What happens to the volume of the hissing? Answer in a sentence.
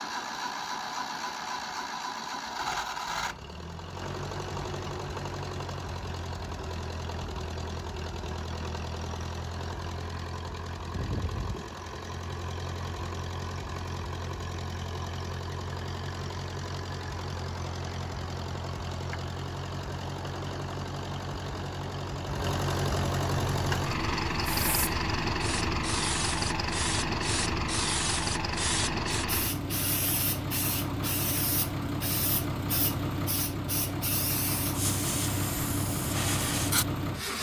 The volume of the hissing stays about the same.